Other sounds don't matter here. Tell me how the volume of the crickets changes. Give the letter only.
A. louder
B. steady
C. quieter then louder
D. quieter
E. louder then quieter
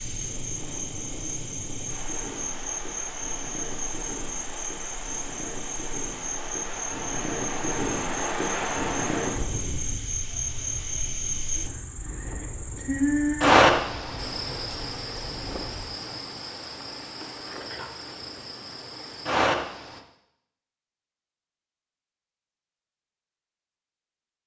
E.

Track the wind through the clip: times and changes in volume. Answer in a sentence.
The wind can be heard from 0.0 to 15.9 s, getting louder then quieter.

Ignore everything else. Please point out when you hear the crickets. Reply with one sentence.
The crickets can be heard from 0.0 to 20.0 s.